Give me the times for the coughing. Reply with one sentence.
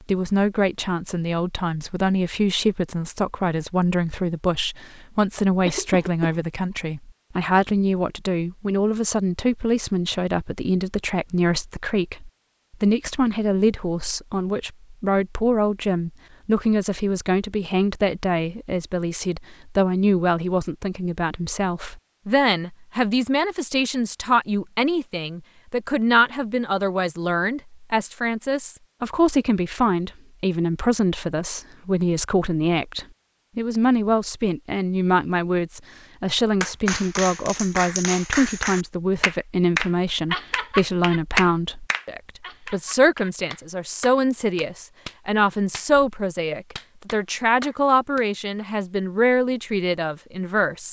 You can hear the coughing from 5.7 to 6.4 s.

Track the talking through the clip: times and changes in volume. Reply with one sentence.
You can hear the talking from 0.1 to 50.8 s, at a steady volume.